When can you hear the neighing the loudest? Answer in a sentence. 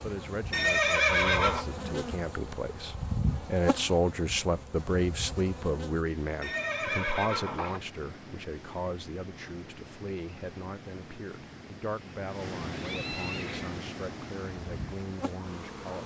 The loudest moment of the neighing is at 1 second.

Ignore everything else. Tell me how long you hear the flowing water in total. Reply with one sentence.
The flowing water can be heard for 10 seconds in total.